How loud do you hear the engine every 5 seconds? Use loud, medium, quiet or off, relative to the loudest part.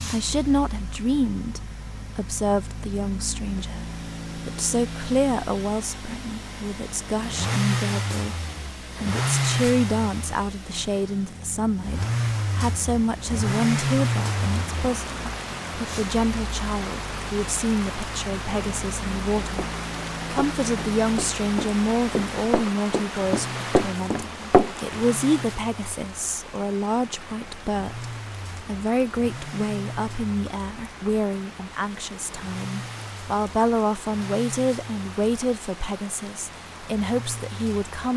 medium, loud, loud, medium, medium, medium, medium, quiet.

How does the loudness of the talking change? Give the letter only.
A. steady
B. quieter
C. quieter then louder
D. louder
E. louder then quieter
A.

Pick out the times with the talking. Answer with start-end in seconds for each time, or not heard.
0.0-38.1.